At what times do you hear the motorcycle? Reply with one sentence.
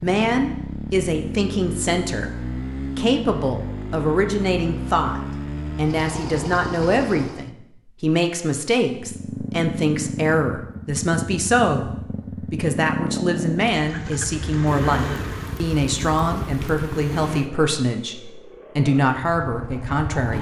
You can hear the motorcycle from 0.0 to 7.5 s and from 8.9 to 20.3 s.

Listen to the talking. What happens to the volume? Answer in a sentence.
The volume of the talking stays about the same.